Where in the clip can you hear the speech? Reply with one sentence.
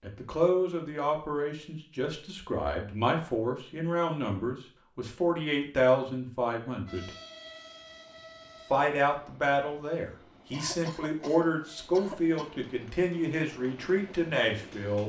You can hear the speech from 0.0 to 7.1 s and from 8.7 to 15.0 s.